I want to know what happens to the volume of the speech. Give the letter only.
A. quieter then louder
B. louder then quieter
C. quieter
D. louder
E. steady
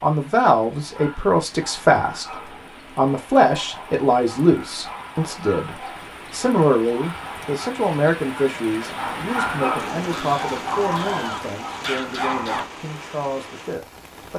C.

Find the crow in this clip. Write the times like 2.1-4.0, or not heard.
10.1-12.7.